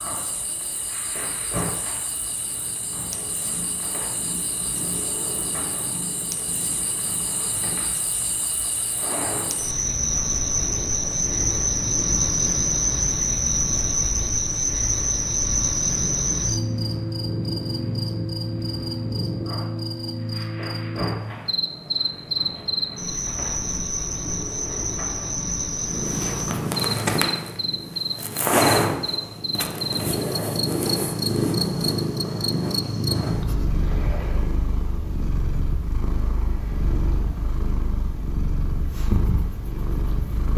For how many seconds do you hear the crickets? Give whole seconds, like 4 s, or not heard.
33 s.